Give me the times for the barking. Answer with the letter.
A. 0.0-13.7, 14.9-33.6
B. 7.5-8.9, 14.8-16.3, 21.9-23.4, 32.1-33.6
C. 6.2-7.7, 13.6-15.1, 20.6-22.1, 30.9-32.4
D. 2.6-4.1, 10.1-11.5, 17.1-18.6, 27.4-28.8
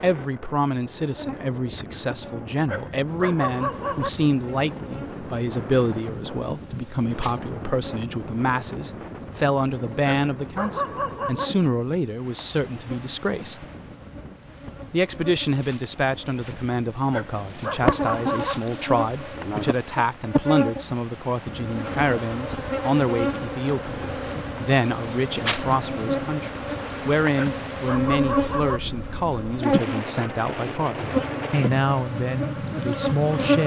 D.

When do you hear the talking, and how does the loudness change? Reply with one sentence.
The talking can be heard from 0.0 to 13.7 s, at a steady volume; and from 14.9 to 33.6 s, at a steady volume.